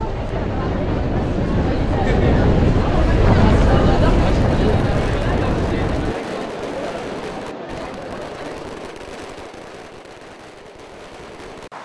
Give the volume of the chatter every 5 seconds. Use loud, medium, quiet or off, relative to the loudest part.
loud, medium, off.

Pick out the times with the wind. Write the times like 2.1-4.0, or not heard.
0.0-6.2.